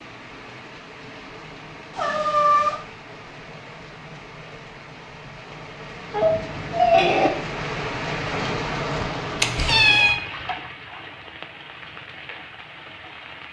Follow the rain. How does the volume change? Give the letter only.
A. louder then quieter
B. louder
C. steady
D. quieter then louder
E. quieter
A.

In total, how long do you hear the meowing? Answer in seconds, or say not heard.
3 s.